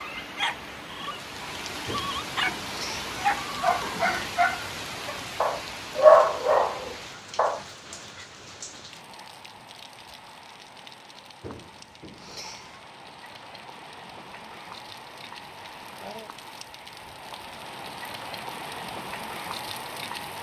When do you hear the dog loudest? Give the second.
6 s.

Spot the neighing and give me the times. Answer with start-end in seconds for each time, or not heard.
1.9-4.3, 11.4-12.9.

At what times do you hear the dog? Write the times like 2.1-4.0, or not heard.
0.0-7.6.